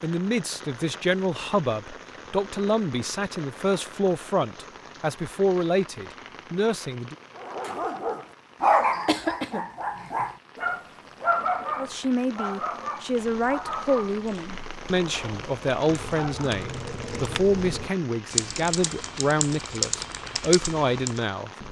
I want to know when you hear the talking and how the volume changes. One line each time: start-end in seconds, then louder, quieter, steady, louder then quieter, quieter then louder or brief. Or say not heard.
0.0-7.2 steady
11.8-21.5 steady.